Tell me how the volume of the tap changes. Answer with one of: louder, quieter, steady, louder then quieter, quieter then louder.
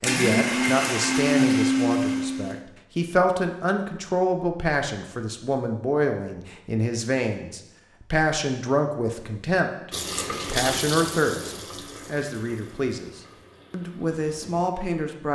quieter.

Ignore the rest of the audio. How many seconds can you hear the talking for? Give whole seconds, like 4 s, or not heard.
15 s.